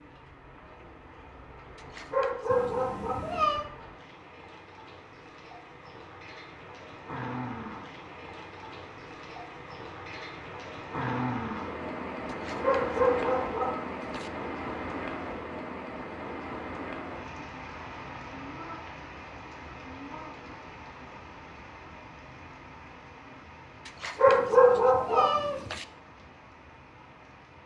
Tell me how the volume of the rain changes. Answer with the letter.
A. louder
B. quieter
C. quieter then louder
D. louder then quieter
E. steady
D.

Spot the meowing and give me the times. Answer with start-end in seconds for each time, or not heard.
2.5-3.7, 24.2-25.8.